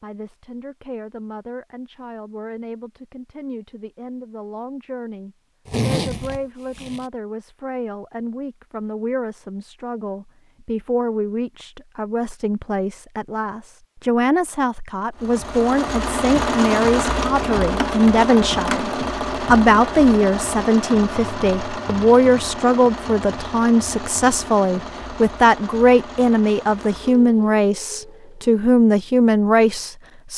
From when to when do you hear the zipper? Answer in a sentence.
The zipper can be heard from 5.7 to 7.0 s.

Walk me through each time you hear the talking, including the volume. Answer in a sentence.
The talking can be heard from 0.0 to 30.3 s, getting louder.